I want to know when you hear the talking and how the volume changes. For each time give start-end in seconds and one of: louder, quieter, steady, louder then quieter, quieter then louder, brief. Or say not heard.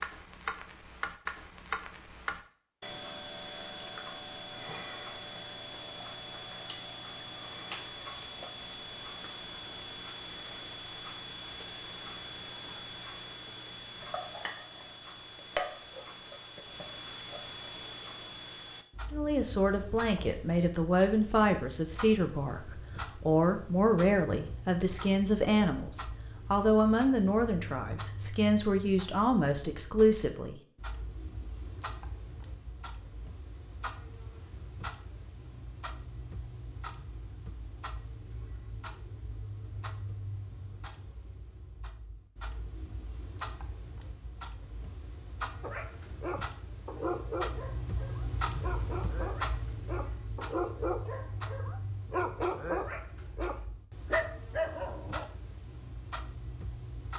19.1-30.6 steady.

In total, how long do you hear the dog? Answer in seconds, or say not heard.
10 s.